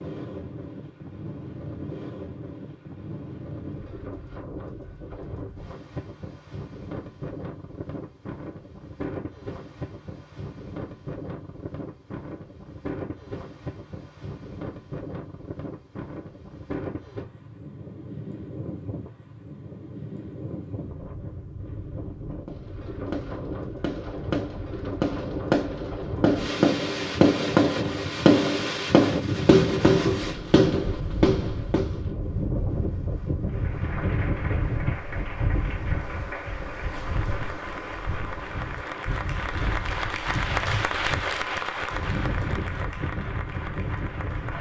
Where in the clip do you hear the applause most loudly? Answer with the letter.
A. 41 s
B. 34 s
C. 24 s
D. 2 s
A.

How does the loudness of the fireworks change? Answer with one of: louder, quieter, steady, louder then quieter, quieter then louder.
louder.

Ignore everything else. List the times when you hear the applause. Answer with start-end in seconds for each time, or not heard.
33.5-44.5.